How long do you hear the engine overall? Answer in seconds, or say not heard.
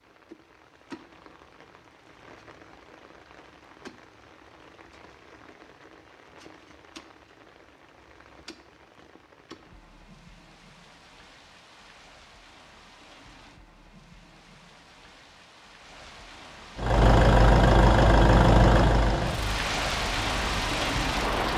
5 s.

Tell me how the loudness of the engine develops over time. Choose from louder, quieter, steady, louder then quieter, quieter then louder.
quieter.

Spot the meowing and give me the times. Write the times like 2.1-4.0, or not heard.
not heard.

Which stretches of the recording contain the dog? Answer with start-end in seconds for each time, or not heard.
not heard.